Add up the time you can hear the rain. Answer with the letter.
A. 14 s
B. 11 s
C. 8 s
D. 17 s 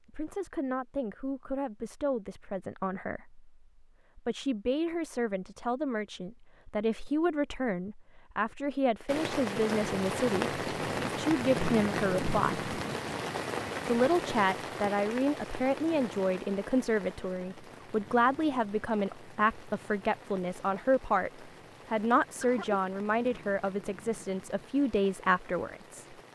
D.